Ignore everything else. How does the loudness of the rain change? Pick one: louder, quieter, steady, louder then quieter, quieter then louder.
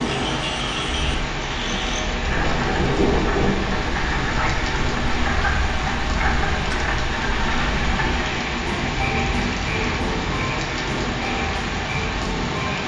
steady.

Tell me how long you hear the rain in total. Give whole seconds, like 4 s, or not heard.
13 s.